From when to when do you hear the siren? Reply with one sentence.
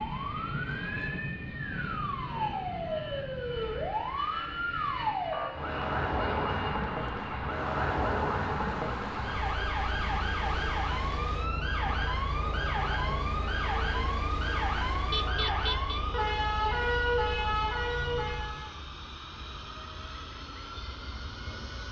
The siren can be heard from 0.0 to 18.8 s.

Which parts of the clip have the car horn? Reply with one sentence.
The car horn can be heard from 15.1 to 16.0 s.